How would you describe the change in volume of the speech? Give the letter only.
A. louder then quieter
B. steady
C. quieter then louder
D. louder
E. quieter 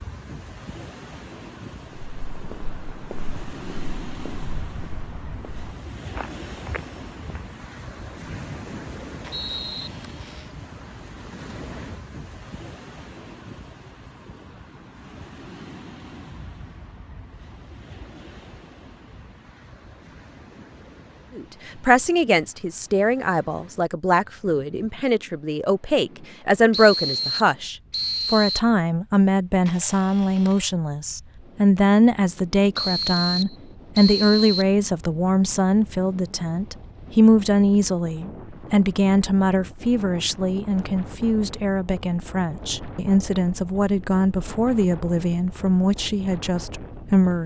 B.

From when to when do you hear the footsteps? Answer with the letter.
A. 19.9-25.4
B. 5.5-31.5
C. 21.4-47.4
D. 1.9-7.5
D.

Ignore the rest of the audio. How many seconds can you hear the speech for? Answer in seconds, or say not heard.
26 s.